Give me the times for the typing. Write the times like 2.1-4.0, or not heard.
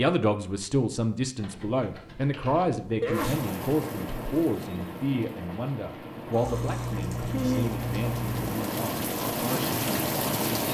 1.4-3.1, 6.4-8.4.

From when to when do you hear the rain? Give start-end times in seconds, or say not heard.
3.1-10.6.